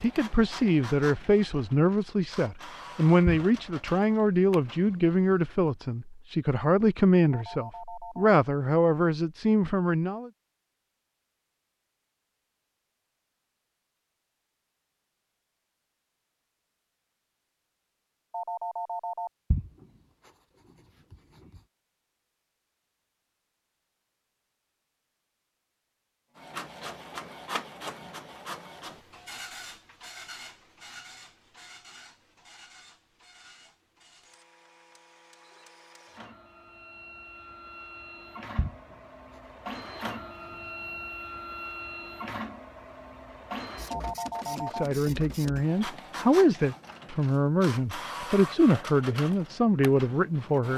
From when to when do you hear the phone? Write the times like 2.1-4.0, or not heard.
7.3-8.3, 18.3-19.3, 43.9-44.9.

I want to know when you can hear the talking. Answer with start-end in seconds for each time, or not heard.
0.0-10.3, 44.5-50.7.